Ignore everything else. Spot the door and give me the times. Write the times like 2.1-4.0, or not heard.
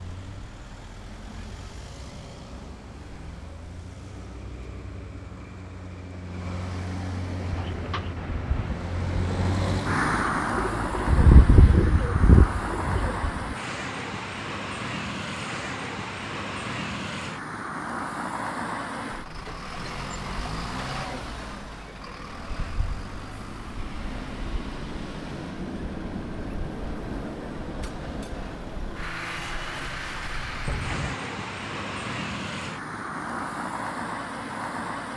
29.4-31.2.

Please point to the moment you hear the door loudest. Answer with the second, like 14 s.
31 s.